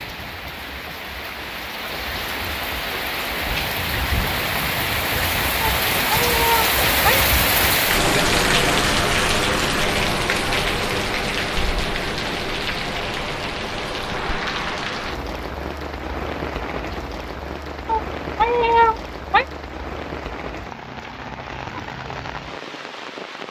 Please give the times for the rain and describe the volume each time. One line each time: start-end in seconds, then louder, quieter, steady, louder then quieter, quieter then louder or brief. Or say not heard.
0.0-23.4 louder then quieter.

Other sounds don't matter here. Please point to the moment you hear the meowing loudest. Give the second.
19 s.